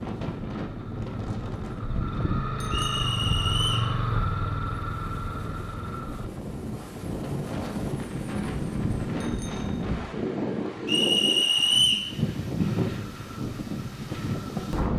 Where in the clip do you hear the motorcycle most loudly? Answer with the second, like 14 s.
4 s.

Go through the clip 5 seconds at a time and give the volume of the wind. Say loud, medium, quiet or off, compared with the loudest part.
medium, loud, loud.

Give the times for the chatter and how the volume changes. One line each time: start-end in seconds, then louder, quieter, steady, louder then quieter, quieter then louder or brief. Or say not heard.
not heard.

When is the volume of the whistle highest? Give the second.
12 s.